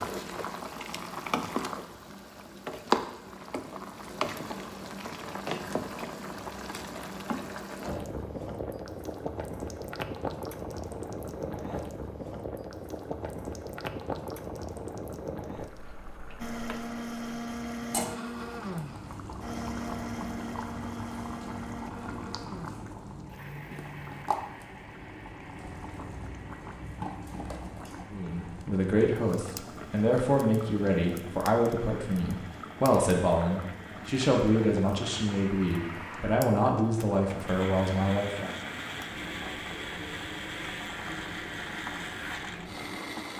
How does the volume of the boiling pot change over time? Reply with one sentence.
The volume of the boiling pot goes down.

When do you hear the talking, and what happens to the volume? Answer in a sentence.
The talking can be heard from 28.1 to 38.5 s, at a steady volume.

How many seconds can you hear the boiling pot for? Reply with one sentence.
You can hear the boiling pot for 43 seconds altogether.